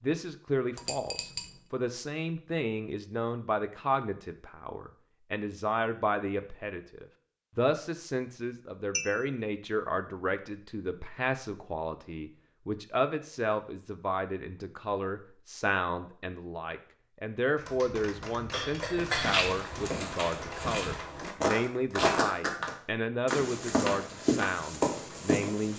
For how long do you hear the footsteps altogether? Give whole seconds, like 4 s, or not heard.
7 s.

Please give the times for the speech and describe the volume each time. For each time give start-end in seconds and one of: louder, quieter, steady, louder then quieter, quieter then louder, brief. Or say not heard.
0.0-25.7 steady.